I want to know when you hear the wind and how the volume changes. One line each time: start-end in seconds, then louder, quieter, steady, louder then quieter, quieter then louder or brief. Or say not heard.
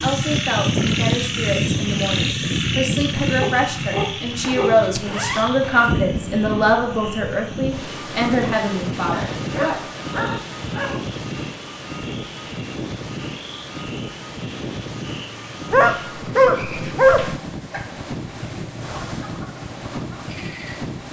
0.0-21.0 quieter.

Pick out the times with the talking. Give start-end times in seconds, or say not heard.
0.0-9.8.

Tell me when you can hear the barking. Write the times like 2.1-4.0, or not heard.
3.4-4.8, 9.1-11.0, 15.7-17.4.